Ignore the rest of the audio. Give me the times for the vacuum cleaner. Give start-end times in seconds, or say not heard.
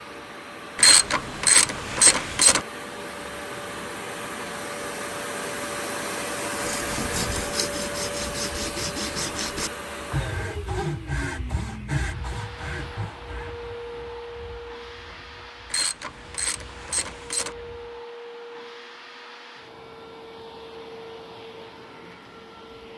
0.0-22.9.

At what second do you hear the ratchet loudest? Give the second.
1 s.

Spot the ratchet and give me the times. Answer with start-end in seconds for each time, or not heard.
0.8-2.6, 15.7-17.6.